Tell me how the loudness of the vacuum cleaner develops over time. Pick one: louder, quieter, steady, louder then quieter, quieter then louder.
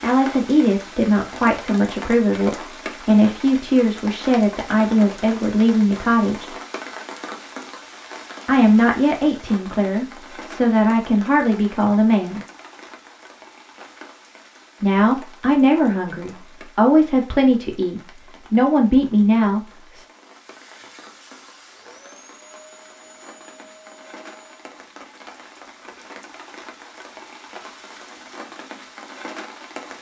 steady.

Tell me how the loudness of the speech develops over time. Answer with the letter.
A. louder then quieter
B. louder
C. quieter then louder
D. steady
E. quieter
D.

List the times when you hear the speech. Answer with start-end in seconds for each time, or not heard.
0.0-6.5, 8.4-12.4, 14.8-20.1.